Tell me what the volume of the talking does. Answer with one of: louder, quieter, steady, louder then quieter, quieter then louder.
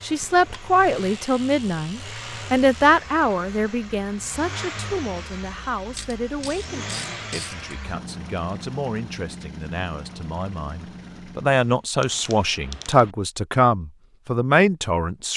quieter then louder.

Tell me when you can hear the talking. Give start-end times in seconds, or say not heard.
0.0-15.3.